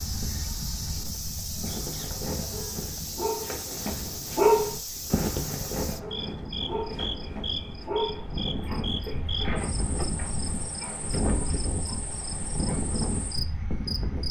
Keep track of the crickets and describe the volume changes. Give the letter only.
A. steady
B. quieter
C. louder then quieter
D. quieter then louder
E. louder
A.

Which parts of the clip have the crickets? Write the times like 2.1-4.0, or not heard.
0.0-14.2.